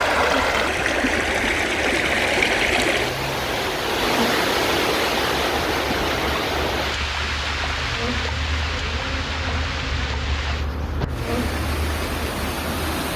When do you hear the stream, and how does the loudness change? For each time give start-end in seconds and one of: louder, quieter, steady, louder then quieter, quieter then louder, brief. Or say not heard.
0.0-13.1 quieter.